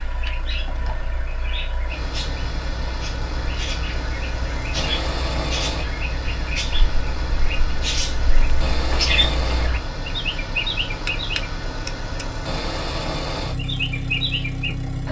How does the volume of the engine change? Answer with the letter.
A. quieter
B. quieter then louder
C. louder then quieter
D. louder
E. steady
D.